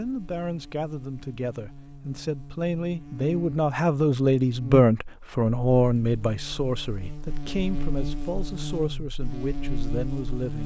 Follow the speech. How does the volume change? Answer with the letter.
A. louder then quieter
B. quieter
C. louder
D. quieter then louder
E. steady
A.